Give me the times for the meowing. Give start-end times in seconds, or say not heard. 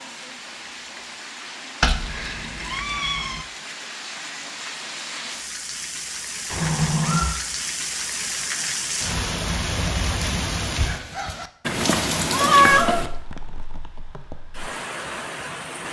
1.8-3.5, 6.5-7.3, 11.7-13.1.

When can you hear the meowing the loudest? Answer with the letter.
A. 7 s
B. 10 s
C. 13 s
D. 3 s
C.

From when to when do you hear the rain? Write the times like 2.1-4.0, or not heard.
0.0-15.8.